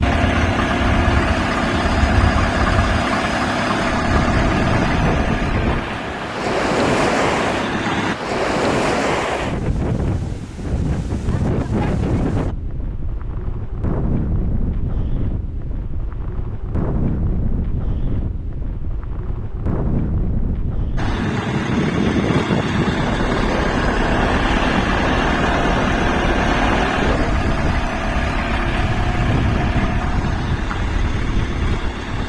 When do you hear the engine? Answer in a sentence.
You can hear the engine from 0.0 to 8.2 s and from 20.9 to 32.2 s.